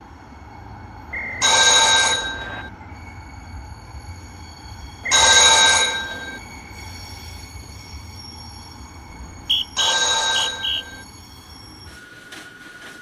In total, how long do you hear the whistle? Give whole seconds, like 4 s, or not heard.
4 s.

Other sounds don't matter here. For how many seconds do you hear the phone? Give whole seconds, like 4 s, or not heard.
4 s.